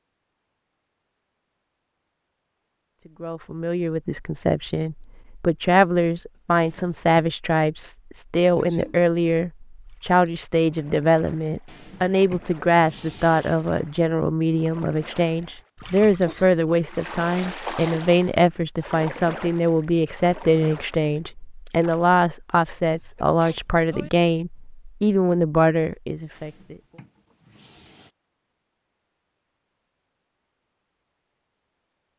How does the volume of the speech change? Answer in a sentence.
The loudness of the speech stays about the same.